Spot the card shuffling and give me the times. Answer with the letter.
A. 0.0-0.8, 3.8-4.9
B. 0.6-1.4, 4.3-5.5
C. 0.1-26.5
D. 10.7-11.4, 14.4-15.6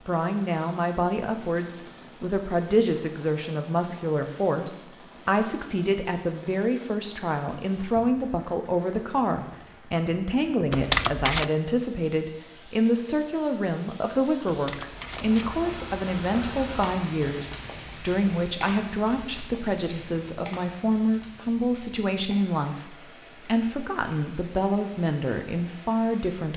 D.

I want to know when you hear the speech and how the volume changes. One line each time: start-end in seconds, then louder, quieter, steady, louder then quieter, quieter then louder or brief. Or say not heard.
0.1-26.5 steady.